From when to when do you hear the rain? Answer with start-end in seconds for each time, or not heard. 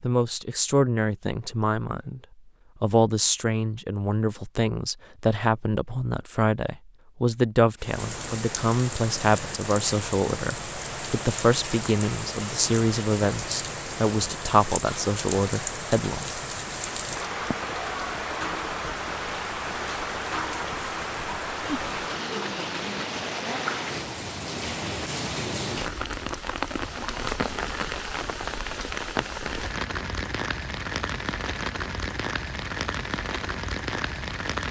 7.8-34.6.